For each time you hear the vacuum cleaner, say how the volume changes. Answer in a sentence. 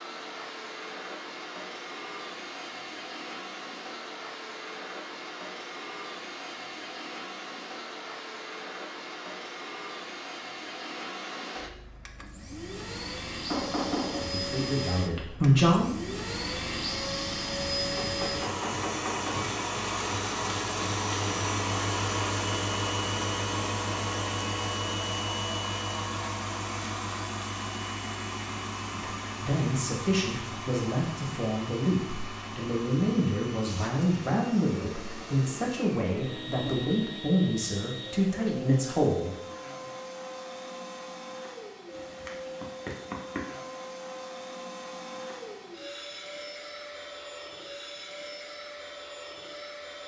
You can hear the vacuum cleaner from 0.0 to 50.0 s, getting louder then quieter.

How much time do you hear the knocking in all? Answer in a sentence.
The knocking can be heard for 4 seconds in total.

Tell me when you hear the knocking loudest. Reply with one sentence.
The loudest moment of the knocking is at 14 seconds.